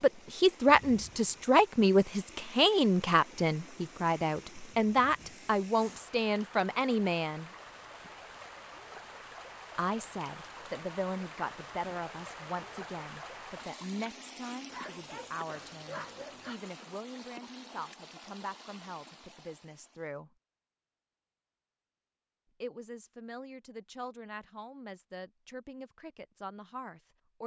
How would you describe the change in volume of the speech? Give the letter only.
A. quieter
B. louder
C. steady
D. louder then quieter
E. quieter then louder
A.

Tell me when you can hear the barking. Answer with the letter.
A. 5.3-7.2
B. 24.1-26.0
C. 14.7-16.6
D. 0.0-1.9
C.